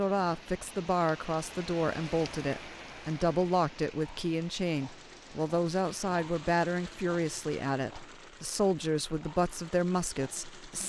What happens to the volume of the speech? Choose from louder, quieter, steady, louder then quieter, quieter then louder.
steady.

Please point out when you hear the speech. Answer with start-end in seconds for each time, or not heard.
0.0-10.8.